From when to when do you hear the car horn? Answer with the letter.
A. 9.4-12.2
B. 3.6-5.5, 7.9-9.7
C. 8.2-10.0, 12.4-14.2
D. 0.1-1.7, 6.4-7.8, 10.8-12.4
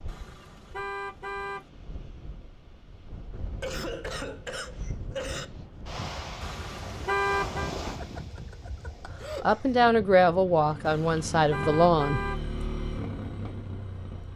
D.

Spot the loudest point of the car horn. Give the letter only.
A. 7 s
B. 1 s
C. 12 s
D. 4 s
A.